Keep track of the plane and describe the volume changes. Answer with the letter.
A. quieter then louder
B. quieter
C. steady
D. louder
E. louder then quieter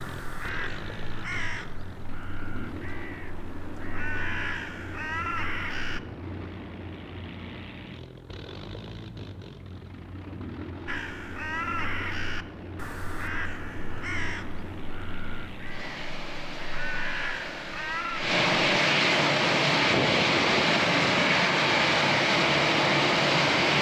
D.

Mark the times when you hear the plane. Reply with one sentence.
The plane can be heard from 0.0 to 23.7 s.